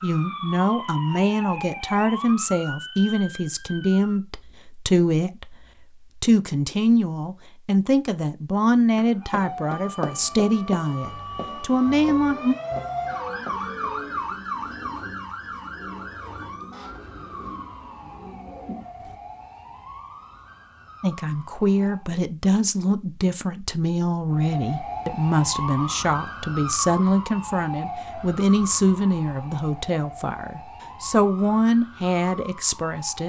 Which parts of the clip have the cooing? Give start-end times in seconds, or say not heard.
13.5-19.2.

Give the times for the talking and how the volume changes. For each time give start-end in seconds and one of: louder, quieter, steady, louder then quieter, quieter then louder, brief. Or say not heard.
0.0-5.5 steady
6.2-12.6 steady
21.0-33.2 steady.